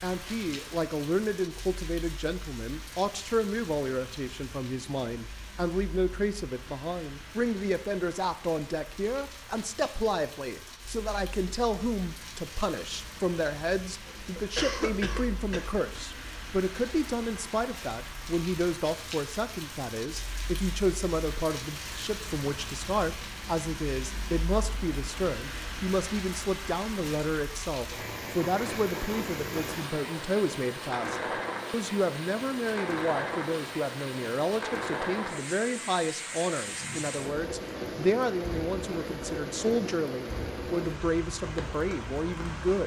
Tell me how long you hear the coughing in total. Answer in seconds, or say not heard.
2 s.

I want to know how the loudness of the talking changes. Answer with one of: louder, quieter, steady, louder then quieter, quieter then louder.
steady.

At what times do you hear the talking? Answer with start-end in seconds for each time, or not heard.
0.0-42.8.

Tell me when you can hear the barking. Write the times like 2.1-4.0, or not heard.
not heard.